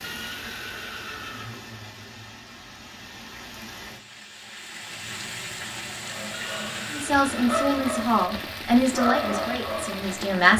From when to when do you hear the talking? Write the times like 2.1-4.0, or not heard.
6.9-10.5.